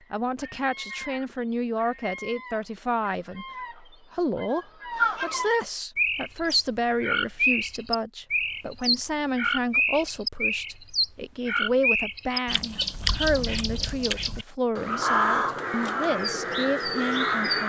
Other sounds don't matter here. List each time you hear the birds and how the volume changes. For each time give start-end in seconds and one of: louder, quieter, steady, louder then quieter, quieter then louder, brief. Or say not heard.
0.0-17.6 louder.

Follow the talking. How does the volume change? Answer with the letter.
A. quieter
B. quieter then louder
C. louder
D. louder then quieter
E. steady
E.